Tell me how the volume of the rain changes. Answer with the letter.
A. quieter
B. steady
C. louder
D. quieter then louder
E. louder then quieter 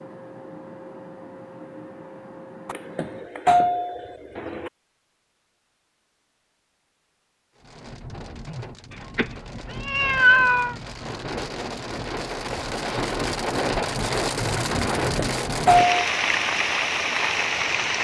C.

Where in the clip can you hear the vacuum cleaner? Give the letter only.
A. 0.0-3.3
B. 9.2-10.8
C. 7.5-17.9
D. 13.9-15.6
A.